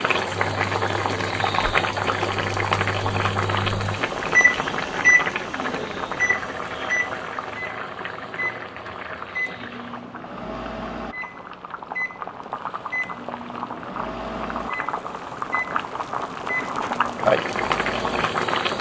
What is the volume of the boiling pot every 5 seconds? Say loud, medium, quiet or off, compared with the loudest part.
loud, medium, medium, loud.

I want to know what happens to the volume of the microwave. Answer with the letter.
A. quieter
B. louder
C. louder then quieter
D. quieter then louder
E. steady
C.